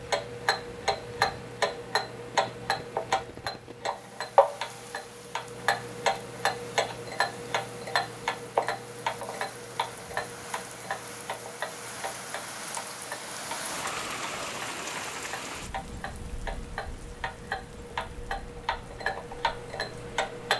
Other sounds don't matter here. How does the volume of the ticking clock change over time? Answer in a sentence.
The loudness of the ticking clock goes down, then up.